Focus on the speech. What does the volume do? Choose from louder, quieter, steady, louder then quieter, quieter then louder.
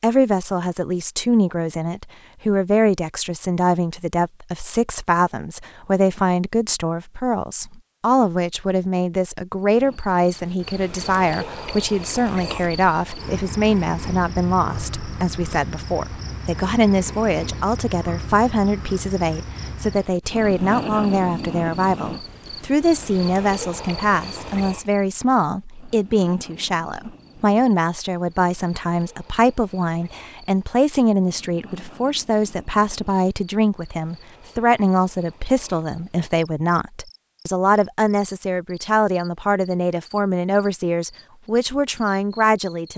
steady.